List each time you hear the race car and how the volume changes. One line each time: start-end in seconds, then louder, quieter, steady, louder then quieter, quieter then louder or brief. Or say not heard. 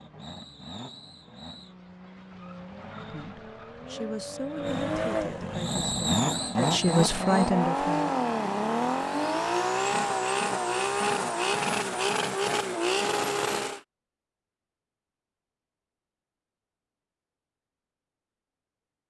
0.0-13.8 louder.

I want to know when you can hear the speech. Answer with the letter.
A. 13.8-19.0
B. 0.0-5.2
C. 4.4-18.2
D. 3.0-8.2
D.